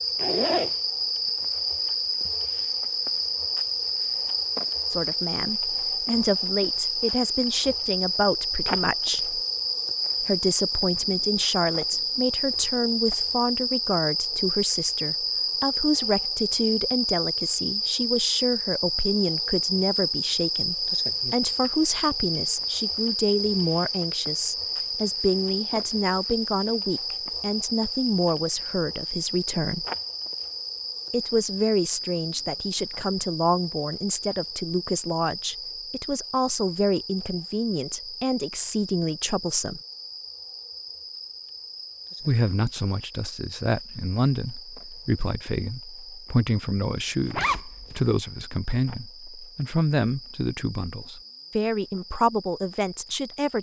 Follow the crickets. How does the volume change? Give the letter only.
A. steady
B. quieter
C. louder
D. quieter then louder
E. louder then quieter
B.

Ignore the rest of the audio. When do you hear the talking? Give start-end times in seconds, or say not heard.
4.9-9.4, 10.2-29.9, 31.1-39.8, 42.2-53.5.